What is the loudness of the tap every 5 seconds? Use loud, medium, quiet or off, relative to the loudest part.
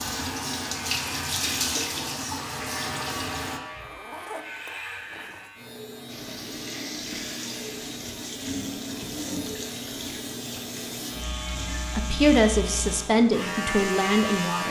loud, medium, medium.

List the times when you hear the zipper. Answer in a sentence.
You can hear the zipper from 3.8 to 5.5 s.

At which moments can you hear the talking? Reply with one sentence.
You can hear the talking from 11.9 to 14.6 s.